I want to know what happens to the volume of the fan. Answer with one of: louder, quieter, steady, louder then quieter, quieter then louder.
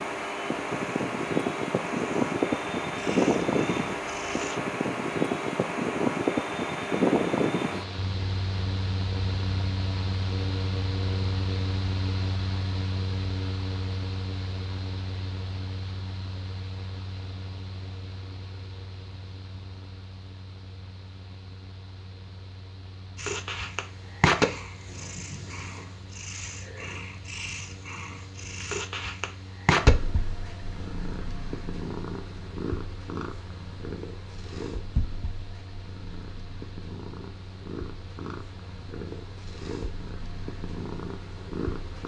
quieter.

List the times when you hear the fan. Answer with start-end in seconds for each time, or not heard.
0.0-42.0.